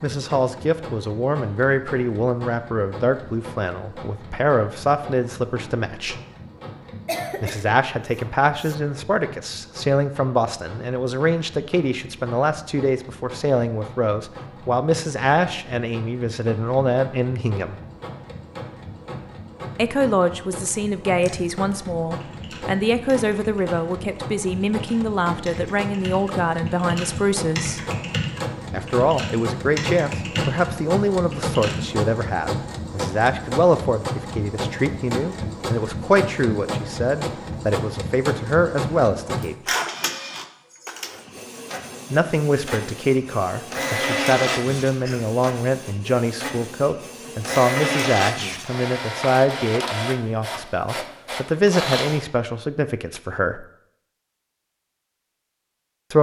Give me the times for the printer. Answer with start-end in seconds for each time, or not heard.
0.0-52.2.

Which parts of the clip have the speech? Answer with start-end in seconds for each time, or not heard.
0.0-6.2, 7.4-17.8, 19.8-27.8, 28.7-39.5, 42.1-53.6.